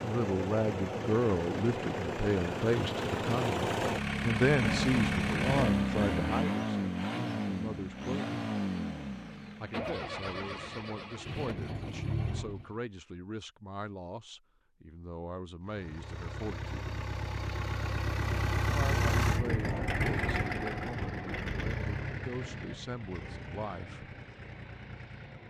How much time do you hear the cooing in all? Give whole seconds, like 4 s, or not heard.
not heard.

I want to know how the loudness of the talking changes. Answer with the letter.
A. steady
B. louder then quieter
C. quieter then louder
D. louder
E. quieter
E.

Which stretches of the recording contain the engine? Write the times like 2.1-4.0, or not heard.
0.0-12.8, 15.7-25.4.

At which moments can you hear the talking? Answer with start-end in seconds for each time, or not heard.
0.0-8.3, 9.6-16.9, 18.6-24.1.